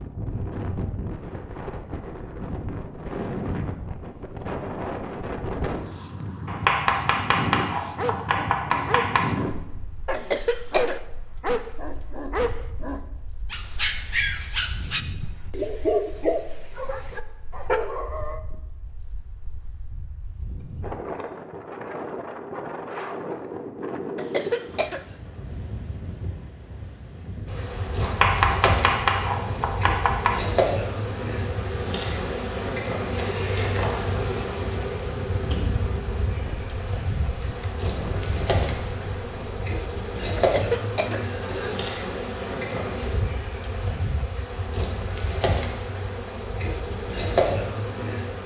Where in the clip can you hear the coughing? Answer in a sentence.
You can hear the coughing from 10.1 to 11.0 s, from 24.1 to 25.1 s and from 40.4 to 41.8 s.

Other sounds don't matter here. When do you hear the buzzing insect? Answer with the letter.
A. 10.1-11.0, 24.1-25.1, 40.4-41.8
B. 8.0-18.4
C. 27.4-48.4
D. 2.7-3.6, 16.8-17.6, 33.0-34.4
C.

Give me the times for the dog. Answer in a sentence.
You can hear the dog from 8.0 to 18.4 s.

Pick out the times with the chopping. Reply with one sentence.
The chopping can be heard from 6.5 to 9.3 s and from 28.0 to 30.4 s.